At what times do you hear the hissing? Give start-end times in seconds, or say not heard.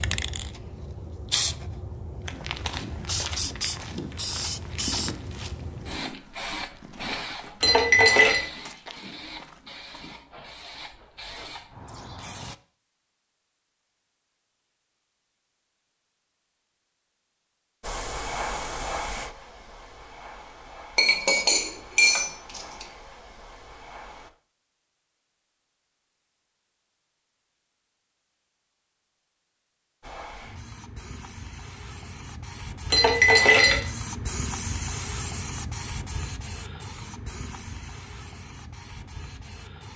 0.0-12.6, 17.8-24.3, 30.0-39.9.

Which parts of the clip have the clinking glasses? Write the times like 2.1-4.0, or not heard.
7.6-8.4, 20.9-22.9, 32.9-33.9.